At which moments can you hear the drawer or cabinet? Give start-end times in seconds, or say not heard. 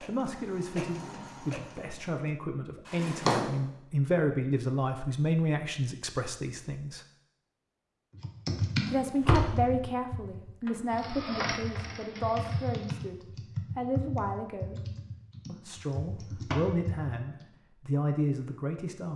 2.9-3.5, 8.8-9.8, 15.8-16.8.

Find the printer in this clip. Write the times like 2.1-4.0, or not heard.
0.0-2.1, 10.9-13.1.